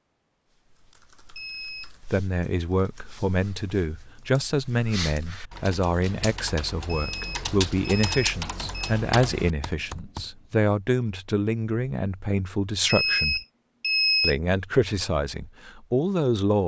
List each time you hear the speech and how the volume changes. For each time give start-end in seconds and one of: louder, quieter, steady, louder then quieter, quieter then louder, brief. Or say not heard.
2.1-13.4 steady
14.2-16.6 brief.